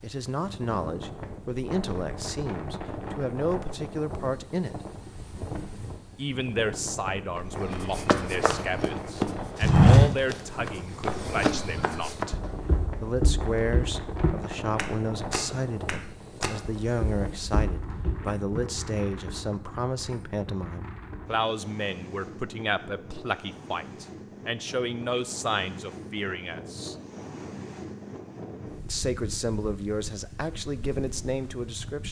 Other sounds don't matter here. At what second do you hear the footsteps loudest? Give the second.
10 s.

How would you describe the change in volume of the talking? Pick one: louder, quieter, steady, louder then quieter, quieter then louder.
steady.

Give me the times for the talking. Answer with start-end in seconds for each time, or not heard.
0.0-4.8, 6.2-12.3, 13.0-26.9, 28.9-32.0.